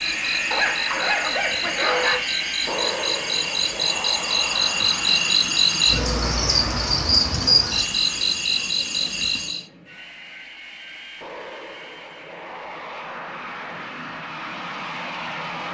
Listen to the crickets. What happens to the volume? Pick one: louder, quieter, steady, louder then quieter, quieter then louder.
louder.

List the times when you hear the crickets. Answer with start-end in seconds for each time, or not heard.
0.0-9.7.